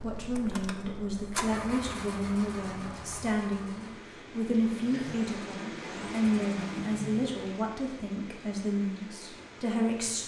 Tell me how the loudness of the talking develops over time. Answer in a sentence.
The volume of the talking stays about the same.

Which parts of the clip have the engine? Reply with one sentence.
The engine can be heard from 0.0 to 7.4 s.